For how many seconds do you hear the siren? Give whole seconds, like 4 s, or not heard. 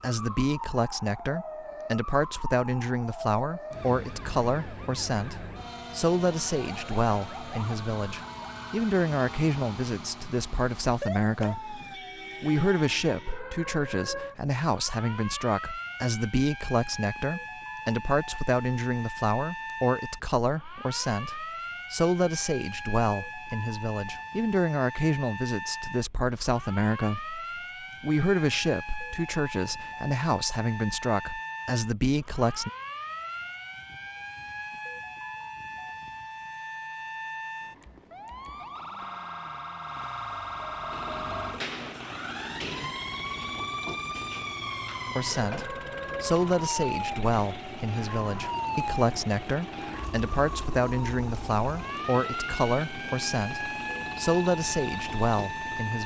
56 s.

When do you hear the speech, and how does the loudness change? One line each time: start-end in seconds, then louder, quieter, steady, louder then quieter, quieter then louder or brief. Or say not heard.
0.0-11.8 steady
12.4-27.4 steady
28.0-32.7 steady
45.1-56.0 steady.